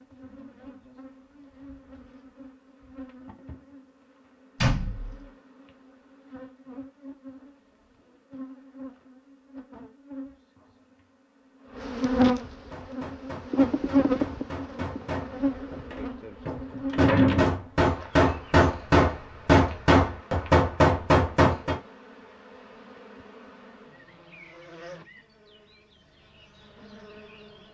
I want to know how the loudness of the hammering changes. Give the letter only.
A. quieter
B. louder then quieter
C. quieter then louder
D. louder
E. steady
D.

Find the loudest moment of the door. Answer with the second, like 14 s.
17 s.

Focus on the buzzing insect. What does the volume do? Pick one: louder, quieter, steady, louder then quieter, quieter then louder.
louder then quieter.